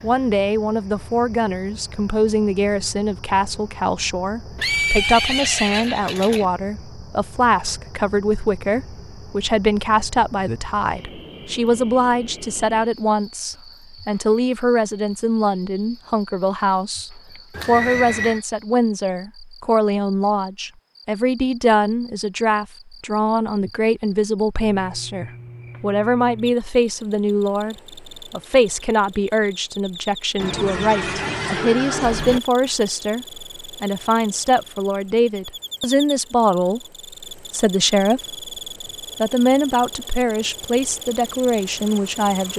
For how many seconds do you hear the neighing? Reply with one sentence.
The neighing can be heard for 5 seconds in total.